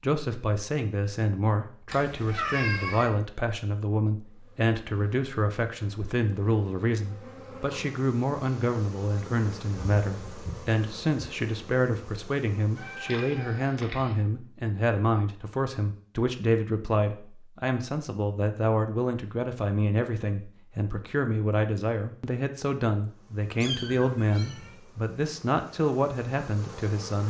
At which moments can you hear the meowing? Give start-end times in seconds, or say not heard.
1.9-3.0, 12.8-14.2, 23.6-24.8.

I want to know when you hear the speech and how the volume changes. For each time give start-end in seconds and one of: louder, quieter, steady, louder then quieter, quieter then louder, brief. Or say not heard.
0.0-27.2 steady.